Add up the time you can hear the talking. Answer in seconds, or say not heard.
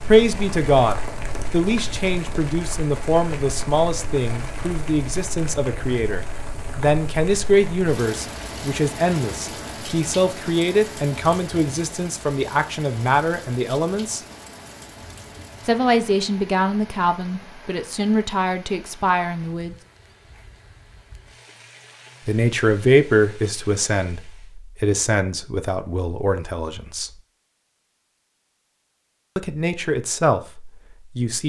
25 s.